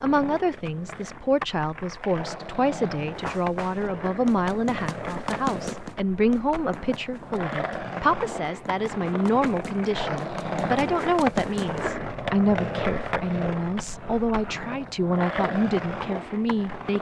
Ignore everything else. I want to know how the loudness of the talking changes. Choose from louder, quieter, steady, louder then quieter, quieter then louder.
steady.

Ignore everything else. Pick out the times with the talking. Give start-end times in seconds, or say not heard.
0.0-16.9.